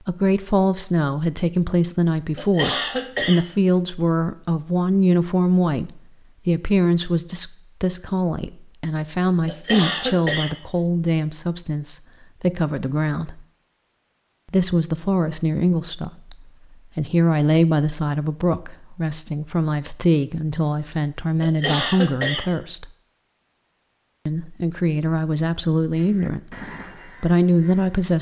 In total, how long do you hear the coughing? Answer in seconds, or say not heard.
3 s.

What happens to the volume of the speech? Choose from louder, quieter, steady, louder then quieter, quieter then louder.
steady.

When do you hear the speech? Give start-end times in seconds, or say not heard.
0.1-13.4, 14.5-22.9, 24.2-28.1.